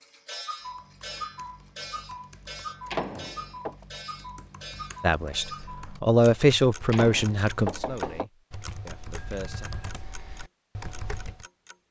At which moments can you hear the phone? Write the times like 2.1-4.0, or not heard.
9.2-10.1.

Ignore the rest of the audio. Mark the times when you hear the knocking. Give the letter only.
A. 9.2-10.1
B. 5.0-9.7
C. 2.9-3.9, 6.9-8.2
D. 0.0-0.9
C.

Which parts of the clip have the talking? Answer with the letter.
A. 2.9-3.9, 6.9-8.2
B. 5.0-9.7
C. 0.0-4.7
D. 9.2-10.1
B.